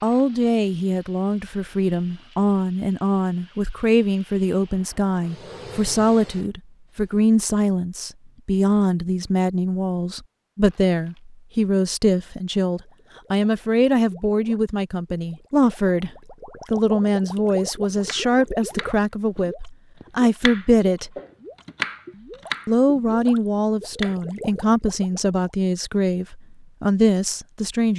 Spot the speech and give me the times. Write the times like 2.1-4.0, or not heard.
0.0-16.1, 16.7-21.1, 22.6-27.9.